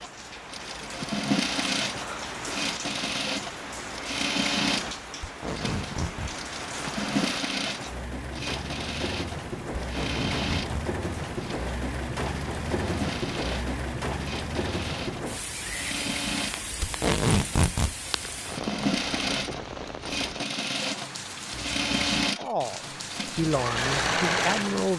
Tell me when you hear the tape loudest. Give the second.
17 s.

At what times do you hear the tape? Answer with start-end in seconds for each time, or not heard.
5.2-6.3, 9.8-10.8, 16.8-17.9.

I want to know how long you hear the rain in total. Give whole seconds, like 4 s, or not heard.
25 s.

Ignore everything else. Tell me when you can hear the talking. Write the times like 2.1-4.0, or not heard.
22.4-24.9.